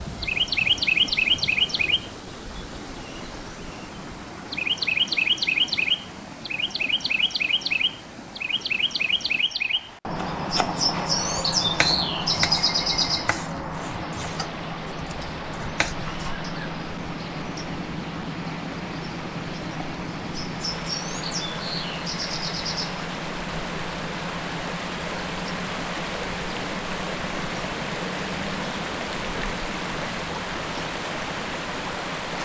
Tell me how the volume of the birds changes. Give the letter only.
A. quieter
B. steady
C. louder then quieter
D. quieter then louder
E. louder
A.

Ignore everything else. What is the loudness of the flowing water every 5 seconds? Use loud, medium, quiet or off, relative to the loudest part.
medium, medium, medium, medium, loud, loud, loud.